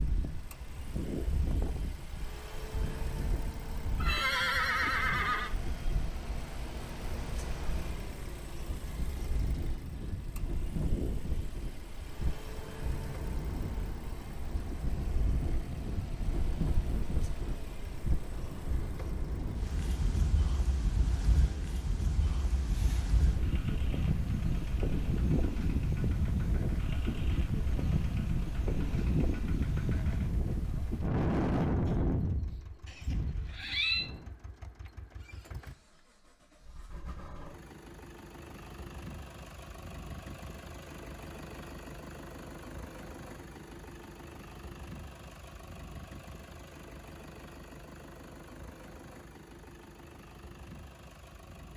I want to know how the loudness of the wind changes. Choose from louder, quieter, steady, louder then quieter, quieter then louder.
louder.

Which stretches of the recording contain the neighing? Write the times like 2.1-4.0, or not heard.
4.0-5.5, 32.9-34.1.